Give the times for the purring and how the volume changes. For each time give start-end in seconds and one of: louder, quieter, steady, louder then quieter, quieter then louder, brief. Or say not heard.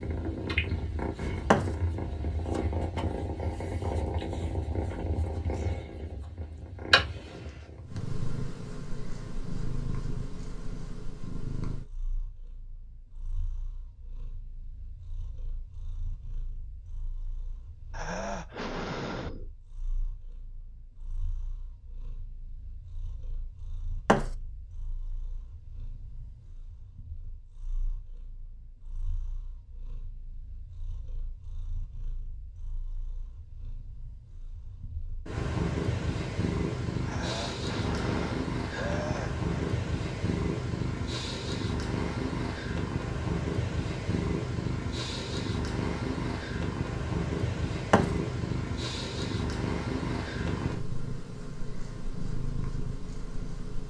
0.0-53.8 quieter then louder.